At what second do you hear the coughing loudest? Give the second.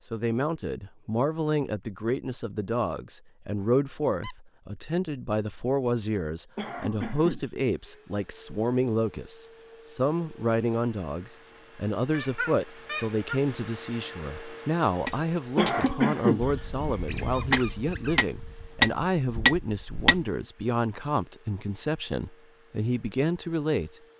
16 s.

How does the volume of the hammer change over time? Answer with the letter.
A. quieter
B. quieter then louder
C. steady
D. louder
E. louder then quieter
B.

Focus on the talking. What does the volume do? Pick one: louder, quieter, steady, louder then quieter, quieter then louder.
steady.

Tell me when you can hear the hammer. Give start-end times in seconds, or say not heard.
15.0-20.2.